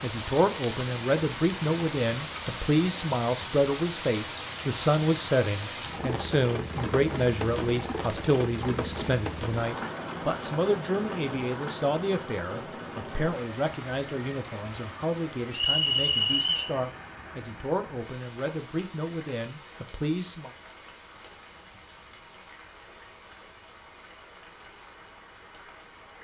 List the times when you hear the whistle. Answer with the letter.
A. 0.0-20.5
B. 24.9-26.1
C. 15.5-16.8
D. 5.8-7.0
C.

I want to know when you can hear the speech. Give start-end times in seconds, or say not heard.
0.0-20.5.